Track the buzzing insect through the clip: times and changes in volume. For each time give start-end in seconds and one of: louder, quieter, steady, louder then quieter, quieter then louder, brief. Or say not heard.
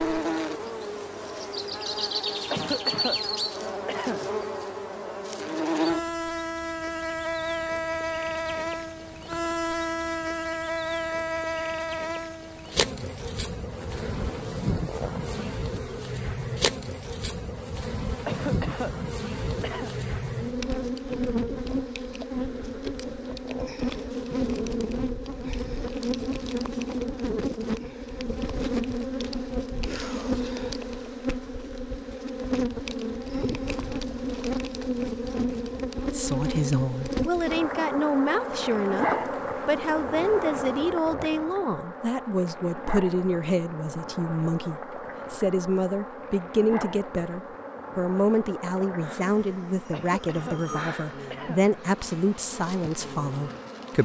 0.0-54.0 quieter.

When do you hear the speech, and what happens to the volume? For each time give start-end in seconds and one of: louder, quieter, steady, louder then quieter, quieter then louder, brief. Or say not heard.
36.1-54.0 steady.